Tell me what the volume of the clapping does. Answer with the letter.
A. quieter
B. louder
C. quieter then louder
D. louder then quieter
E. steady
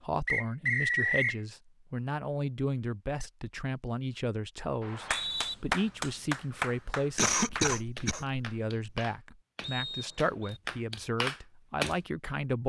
C.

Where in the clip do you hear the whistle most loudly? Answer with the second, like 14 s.
1 s.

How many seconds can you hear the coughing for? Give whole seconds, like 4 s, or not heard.
2 s.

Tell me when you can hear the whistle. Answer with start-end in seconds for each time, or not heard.
0.2-1.4, 4.8-5.5, 9.6-10.6.